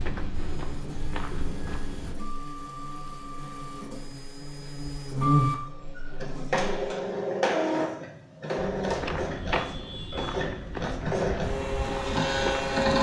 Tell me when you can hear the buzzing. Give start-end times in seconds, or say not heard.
0.0-6.9.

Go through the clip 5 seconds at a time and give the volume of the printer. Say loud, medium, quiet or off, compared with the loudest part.
quiet, loud, loud.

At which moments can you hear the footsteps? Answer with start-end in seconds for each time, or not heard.
0.0-2.1, 8.8-12.7.